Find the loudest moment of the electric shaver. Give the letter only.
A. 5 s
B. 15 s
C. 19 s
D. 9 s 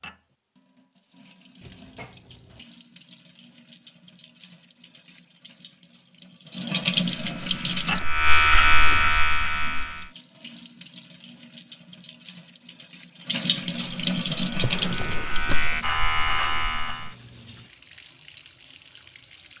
D.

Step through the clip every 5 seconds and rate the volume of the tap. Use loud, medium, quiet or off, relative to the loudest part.
quiet, loud, loud, quiet.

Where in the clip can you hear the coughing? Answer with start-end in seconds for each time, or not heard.
not heard.